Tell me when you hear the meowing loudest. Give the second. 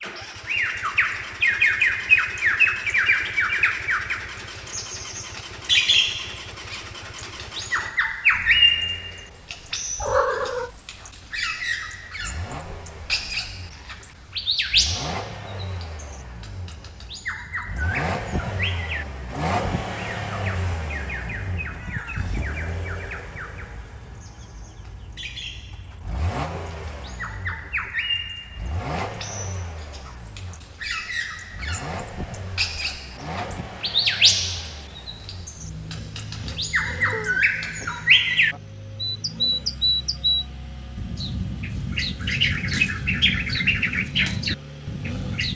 10 s.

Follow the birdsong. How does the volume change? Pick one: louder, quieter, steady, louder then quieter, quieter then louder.
quieter then louder.